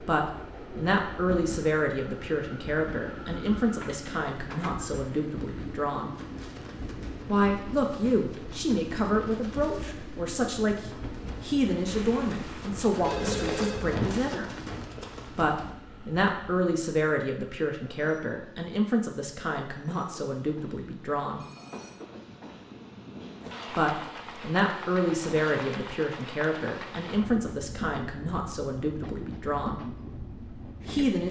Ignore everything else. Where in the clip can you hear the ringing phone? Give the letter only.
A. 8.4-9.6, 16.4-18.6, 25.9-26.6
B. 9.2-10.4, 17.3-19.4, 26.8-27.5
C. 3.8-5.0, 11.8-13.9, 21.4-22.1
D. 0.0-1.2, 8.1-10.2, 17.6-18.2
C.